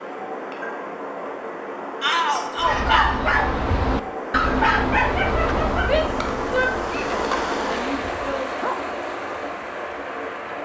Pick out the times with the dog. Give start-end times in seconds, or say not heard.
2.6-8.8.